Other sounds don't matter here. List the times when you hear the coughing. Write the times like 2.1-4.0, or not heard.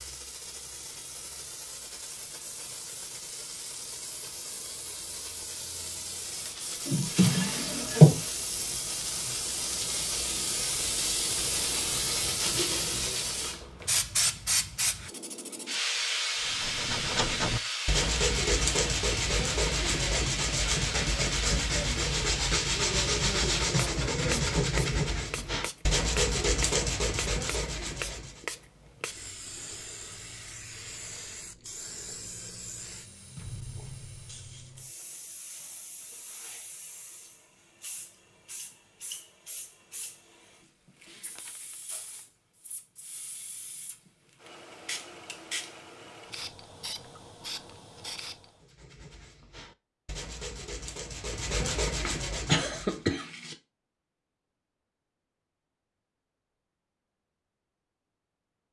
52.0-53.5.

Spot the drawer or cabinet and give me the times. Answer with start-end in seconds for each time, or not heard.
6.8-8.2.